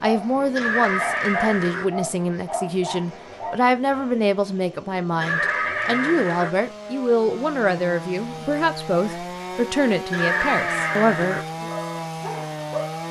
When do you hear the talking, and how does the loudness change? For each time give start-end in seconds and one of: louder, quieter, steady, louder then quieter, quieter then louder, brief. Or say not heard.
0.0-11.7 steady.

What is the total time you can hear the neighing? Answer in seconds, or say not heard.
4 s.